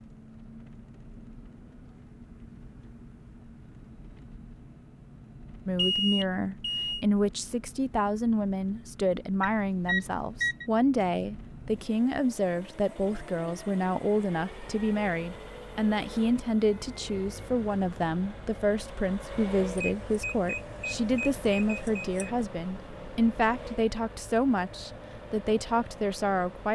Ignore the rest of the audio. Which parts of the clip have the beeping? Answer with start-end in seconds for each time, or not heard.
5.8-7.0, 9.4-10.7, 19.8-22.3.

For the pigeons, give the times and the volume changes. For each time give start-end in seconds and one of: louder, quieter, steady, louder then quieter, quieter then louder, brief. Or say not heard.
not heard.